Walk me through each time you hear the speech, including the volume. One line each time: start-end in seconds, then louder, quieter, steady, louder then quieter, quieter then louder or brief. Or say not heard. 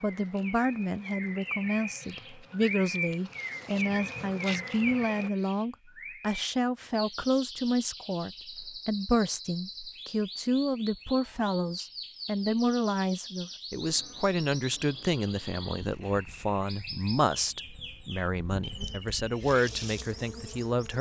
0.0-20.9 steady.